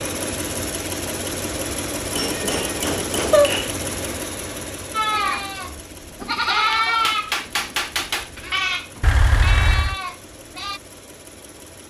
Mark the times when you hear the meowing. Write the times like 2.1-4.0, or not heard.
2.4-3.5, 9.0-9.9.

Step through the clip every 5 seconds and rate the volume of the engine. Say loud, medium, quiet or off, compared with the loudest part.
loud, quiet, quiet.